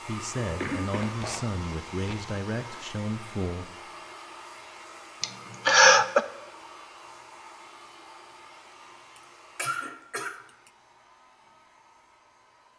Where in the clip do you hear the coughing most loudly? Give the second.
6 s.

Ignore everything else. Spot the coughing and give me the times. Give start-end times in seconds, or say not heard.
0.4-2.4, 5.2-6.2, 9.2-10.7.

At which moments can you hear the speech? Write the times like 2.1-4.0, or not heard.
0.1-3.8.